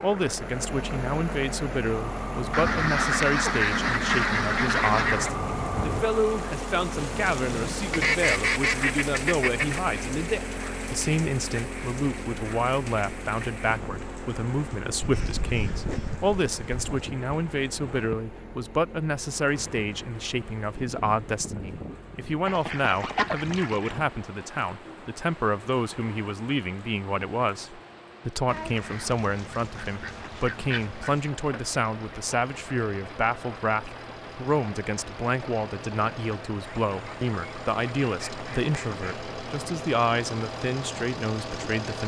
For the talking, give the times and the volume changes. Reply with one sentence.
You can hear the talking from 0.0 to 42.0 s, at a steady volume.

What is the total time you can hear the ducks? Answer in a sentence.
You can hear the ducks for 13 seconds altogether.